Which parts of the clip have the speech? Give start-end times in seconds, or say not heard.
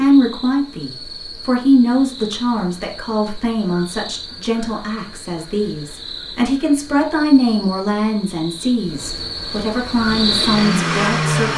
0.0-11.5.